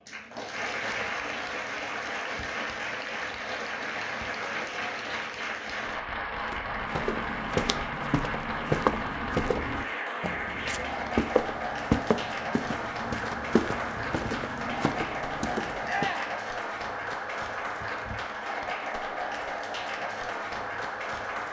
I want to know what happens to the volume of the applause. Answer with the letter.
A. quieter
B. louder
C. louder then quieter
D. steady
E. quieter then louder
D.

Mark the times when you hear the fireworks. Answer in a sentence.
The fireworks can't be heard in this clip.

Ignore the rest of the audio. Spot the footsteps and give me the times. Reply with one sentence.
The footsteps can be heard from 6.4 to 16.1 s.